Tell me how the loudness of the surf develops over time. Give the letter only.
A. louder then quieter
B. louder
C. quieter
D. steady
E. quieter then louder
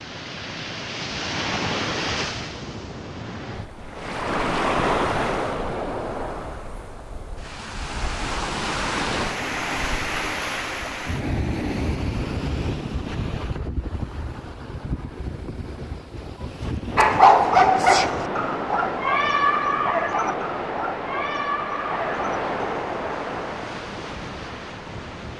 D.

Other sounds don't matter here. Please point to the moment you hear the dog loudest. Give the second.
17 s.